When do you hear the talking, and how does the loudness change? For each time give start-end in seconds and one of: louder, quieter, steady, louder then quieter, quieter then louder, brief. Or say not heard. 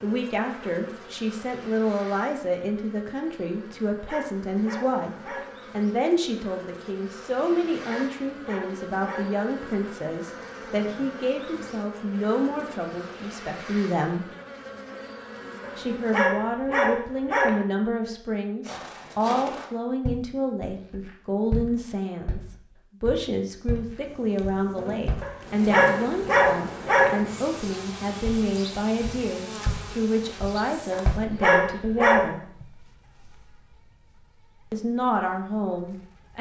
0.0-14.3 steady
15.8-32.4 steady
34.7-36.3 brief.